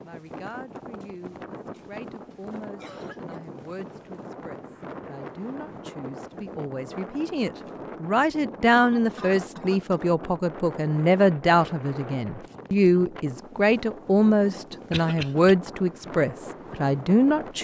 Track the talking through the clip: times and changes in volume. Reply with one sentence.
The talking can be heard from 0.0 to 17.5 s, getting louder.